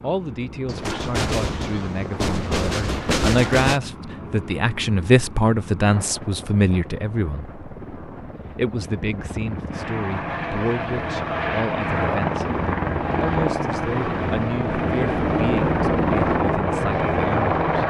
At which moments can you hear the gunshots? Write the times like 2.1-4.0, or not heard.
0.7-3.8.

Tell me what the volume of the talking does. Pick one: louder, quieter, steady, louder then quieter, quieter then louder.
louder then quieter.